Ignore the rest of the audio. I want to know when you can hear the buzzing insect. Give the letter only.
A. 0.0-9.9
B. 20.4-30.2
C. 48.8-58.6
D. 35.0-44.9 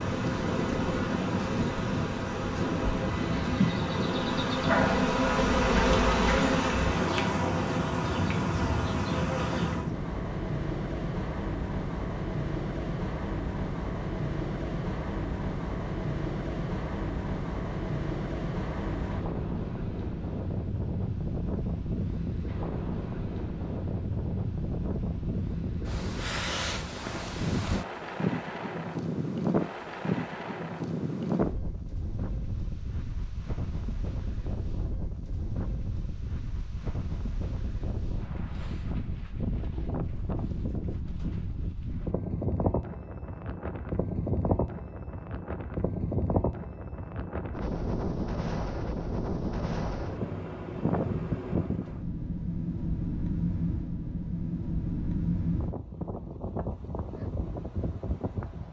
A.